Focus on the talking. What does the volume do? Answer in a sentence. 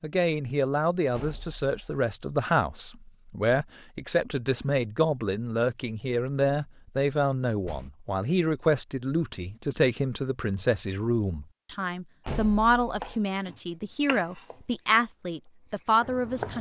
The volume of the talking stays about the same.